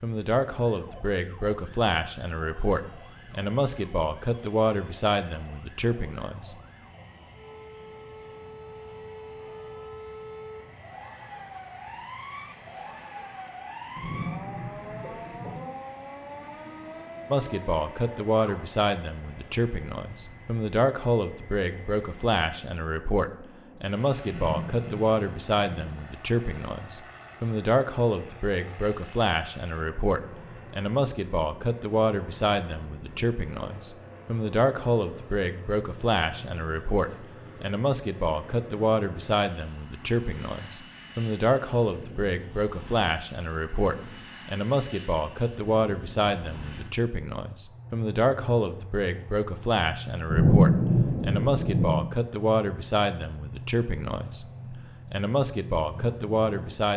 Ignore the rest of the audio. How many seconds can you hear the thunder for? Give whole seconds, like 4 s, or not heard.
5 s.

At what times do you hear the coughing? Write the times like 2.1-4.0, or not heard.
15.0-15.8.